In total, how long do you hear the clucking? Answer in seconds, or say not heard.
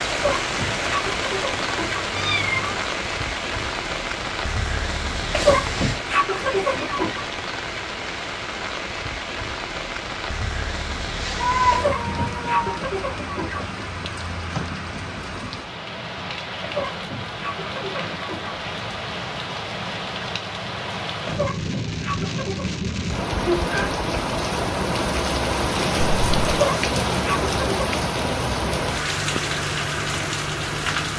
11 s.